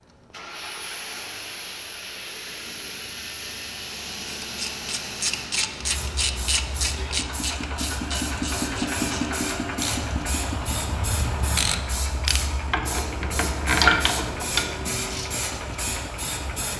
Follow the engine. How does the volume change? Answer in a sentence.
The volume of the engine goes up, then down.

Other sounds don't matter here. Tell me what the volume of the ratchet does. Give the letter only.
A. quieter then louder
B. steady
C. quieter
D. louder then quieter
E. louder
A.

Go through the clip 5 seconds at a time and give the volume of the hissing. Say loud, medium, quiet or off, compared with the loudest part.
medium, loud, loud, loud.